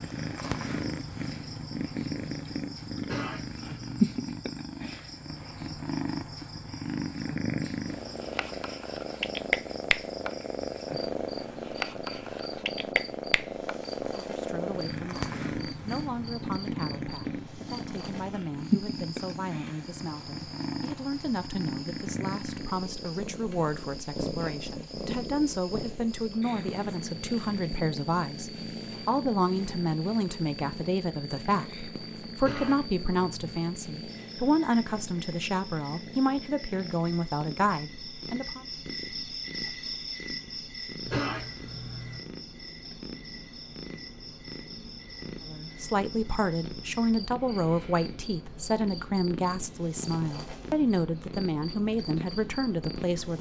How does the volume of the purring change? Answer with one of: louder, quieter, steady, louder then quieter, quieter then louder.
quieter.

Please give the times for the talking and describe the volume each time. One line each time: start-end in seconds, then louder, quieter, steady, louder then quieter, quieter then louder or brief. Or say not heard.
14.2-38.6 louder
45.5-53.3 steady.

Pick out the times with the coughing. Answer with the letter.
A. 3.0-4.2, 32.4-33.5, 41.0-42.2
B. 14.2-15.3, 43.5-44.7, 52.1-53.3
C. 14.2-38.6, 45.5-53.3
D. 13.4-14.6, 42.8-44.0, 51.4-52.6
A.